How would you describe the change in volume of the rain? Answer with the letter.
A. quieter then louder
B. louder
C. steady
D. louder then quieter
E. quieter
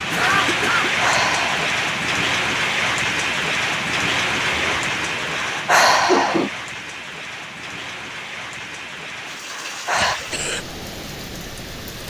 E.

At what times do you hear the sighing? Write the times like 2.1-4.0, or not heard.
0.8-1.8, 5.3-6.5, 9.5-10.2.